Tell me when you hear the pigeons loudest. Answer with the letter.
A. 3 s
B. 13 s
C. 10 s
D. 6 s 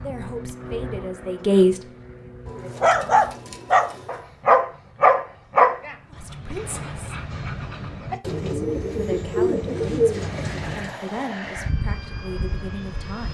C.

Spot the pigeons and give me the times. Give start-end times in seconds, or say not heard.
2.5-4.2, 8.2-10.9.